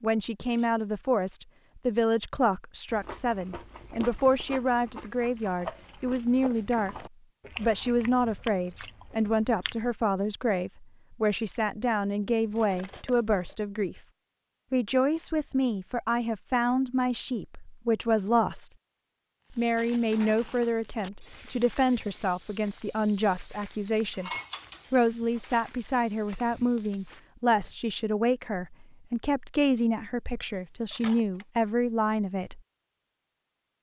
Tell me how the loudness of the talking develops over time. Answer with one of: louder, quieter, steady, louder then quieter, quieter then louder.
steady.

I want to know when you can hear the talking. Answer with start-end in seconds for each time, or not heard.
0.0-14.0, 14.7-18.7, 19.5-24.3, 24.9-32.6.